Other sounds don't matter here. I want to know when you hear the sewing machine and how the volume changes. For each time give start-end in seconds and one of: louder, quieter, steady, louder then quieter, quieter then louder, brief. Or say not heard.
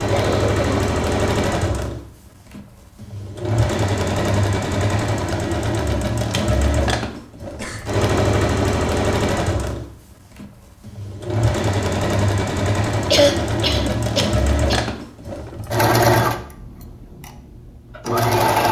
0.0-18.6 steady.